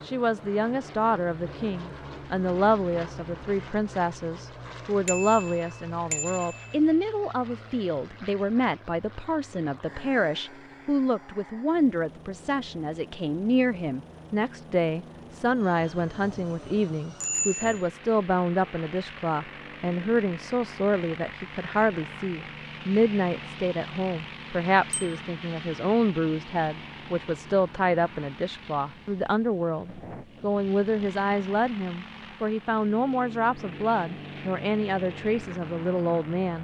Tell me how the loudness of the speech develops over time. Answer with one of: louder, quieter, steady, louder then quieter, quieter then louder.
steady.